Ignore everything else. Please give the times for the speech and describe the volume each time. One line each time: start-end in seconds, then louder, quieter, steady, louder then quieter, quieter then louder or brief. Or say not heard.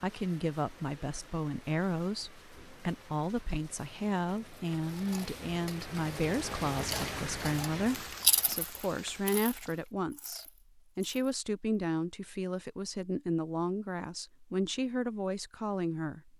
0.0-16.3 steady.